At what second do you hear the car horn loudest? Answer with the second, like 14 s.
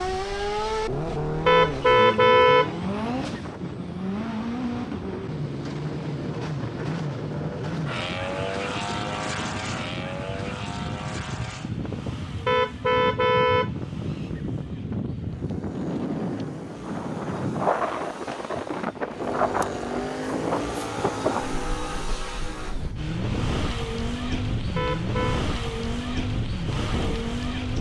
2 s.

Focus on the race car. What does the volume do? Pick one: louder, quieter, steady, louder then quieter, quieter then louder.
quieter then louder.